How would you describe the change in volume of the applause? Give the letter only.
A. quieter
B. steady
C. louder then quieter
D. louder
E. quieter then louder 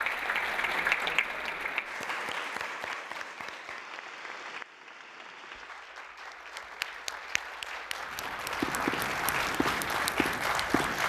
E.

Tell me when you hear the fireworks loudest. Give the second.
9 s.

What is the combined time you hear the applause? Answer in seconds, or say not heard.
11 s.